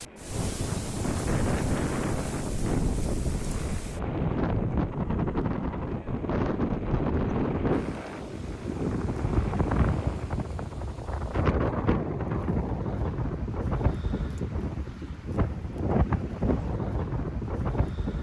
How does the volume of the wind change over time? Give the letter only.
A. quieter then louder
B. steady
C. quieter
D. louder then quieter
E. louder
B.